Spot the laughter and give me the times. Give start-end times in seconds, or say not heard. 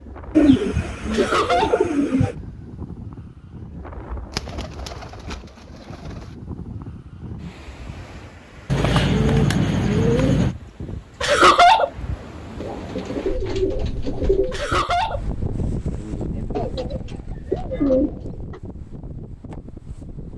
1.1-1.8, 11.2-11.9, 14.5-15.2.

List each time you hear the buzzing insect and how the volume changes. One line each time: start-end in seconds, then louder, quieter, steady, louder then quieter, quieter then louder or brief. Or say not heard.
not heard.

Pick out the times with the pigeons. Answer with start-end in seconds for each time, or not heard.
0.3-2.4, 4.3-5.3, 8.7-10.6, 12.6-14.6, 16.5-18.6.